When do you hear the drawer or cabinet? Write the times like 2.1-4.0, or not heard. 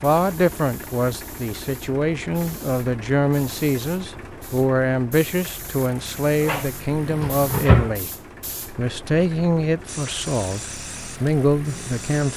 6.4-8.0.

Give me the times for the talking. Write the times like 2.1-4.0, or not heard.
0.0-8.1, 8.7-12.3.